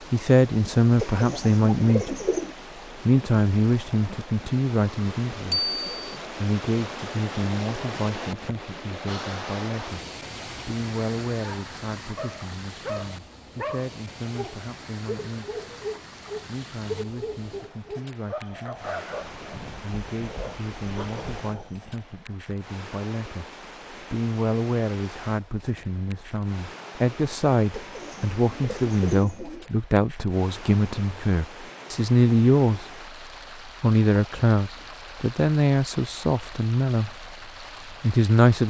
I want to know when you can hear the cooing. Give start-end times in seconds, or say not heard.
0.9-2.5, 27.7-29.7.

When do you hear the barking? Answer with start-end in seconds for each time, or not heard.
11.4-22.1.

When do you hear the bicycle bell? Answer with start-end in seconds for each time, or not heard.
5.5-6.2.